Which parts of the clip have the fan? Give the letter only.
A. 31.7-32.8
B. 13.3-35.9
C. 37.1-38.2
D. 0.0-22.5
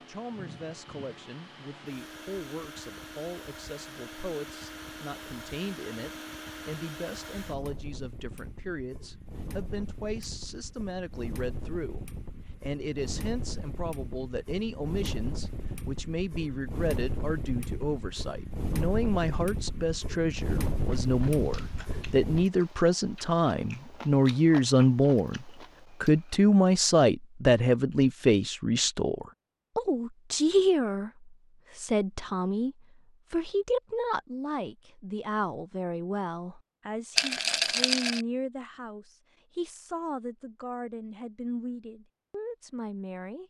D.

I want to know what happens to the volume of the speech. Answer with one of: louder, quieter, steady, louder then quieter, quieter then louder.
louder then quieter.